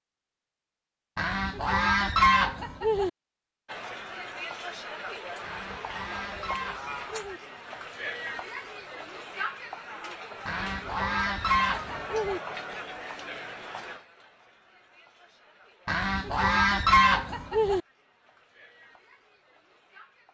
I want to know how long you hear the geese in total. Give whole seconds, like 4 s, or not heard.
8 s.